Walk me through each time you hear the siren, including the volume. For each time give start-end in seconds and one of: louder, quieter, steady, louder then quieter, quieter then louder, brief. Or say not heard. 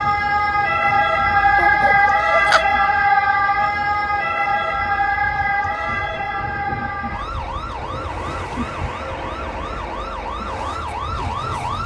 0.0-11.8 quieter.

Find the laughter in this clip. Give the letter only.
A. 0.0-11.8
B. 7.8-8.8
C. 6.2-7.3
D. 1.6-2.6
D.